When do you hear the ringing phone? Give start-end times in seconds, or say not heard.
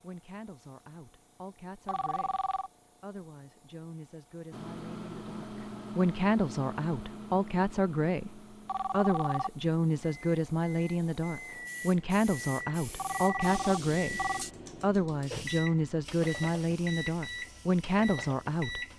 1.9-2.7, 8.7-9.5, 12.9-14.4.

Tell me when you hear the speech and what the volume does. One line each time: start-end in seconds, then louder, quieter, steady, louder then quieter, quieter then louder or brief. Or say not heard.
0.0-18.8 louder.